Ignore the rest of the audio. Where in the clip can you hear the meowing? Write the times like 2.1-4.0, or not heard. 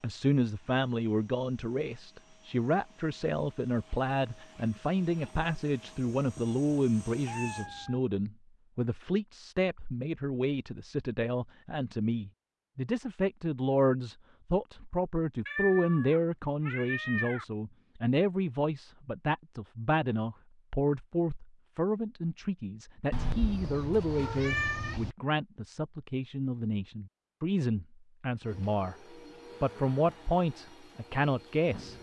6.2-8.0, 15.4-17.4, 23.1-25.1.